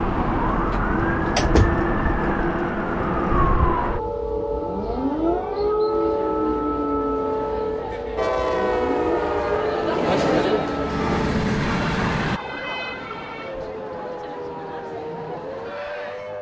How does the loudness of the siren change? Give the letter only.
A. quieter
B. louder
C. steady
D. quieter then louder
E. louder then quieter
A.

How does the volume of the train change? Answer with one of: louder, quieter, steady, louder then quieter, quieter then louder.
quieter then louder.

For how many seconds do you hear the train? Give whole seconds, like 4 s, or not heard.
4 s.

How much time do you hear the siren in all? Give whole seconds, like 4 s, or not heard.
16 s.